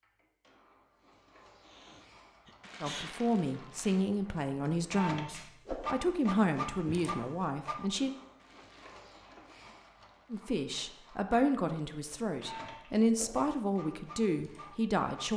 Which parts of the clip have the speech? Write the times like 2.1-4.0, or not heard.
2.8-8.2, 10.3-15.3.